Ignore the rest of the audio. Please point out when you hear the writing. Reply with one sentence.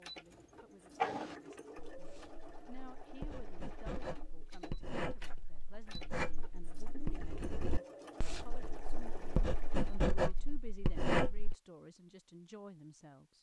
You can hear the writing from 0.9 to 11.6 s.